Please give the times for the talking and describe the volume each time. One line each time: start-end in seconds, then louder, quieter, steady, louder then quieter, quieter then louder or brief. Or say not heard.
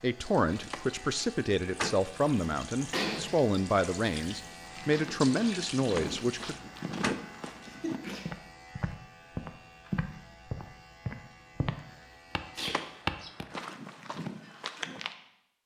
0.0-6.5 steady.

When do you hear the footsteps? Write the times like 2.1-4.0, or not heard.
4.6-15.2.